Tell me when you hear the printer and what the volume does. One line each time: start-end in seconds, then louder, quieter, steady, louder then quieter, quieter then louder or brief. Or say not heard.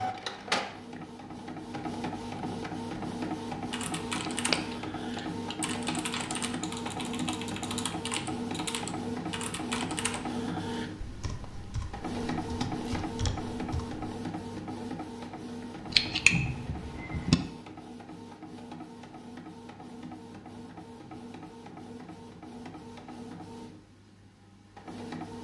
0.0-25.3 quieter.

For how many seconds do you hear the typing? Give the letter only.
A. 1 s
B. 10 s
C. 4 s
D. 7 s
B.